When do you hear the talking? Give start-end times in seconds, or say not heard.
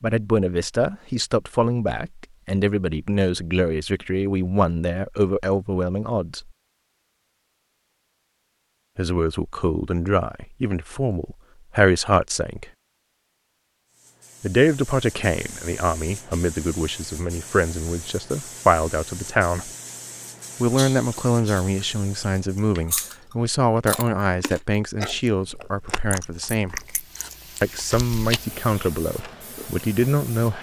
0.0-6.5, 8.9-12.7, 14.4-19.7, 20.6-26.8, 27.6-30.5.